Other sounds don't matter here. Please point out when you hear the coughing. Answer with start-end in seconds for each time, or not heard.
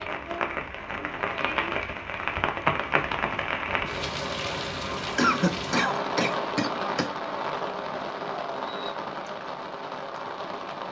5.2-7.2.